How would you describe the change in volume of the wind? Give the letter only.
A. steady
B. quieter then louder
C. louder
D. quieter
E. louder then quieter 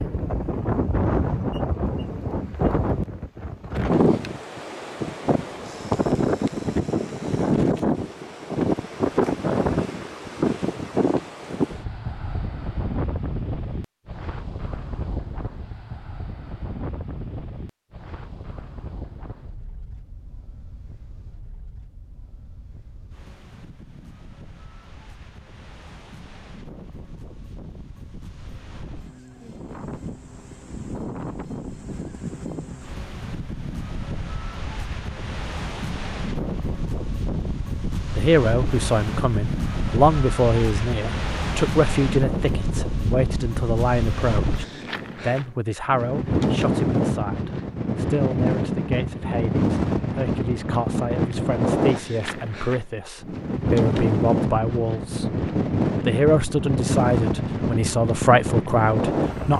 B.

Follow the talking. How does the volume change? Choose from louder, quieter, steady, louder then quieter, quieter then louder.
quieter then louder.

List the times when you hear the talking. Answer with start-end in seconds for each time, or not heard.
38.1-55.3, 56.0-59.5.